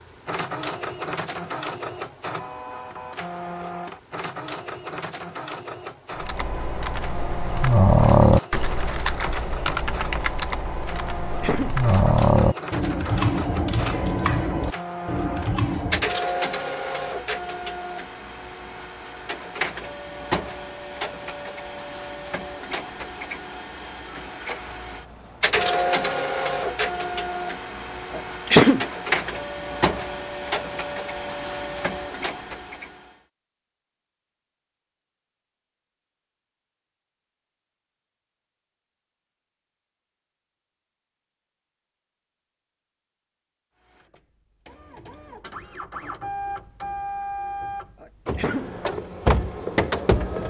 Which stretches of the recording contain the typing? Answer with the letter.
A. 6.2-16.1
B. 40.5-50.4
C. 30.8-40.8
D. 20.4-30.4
A.